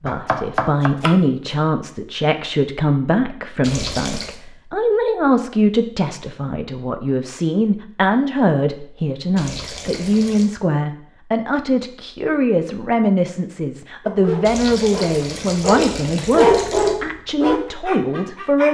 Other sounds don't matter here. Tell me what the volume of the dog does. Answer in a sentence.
The volume of the dog goes up, then down.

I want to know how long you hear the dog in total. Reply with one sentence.
You can hear the dog for 5 seconds altogether.